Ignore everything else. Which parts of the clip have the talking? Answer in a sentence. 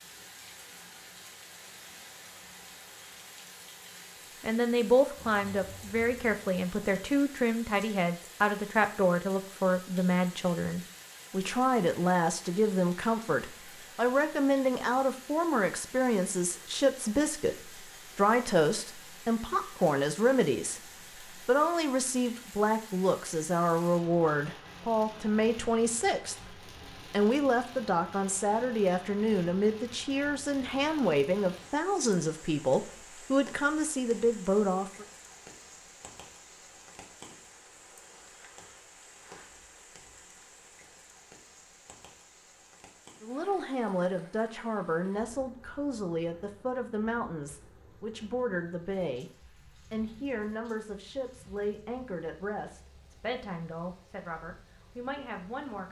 You can hear the talking from 4.4 to 35.0 s and from 43.2 to 55.8 s.